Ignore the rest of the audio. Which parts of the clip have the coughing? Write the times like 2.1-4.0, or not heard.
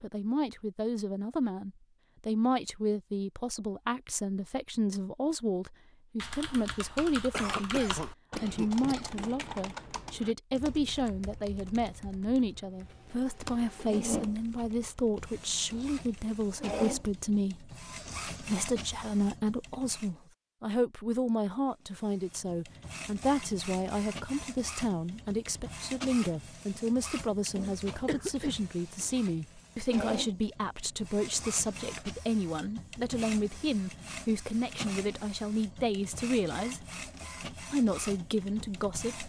7.3-9.3, 28.1-28.6.